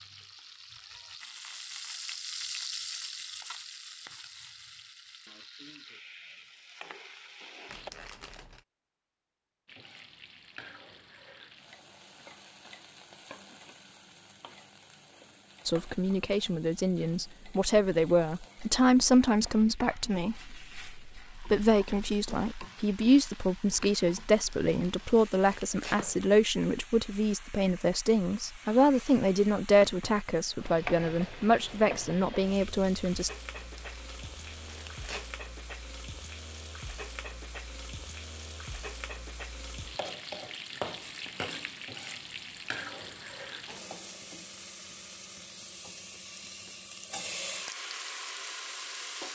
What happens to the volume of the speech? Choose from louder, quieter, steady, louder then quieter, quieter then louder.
steady.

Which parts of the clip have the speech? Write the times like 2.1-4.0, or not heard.
15.7-33.3.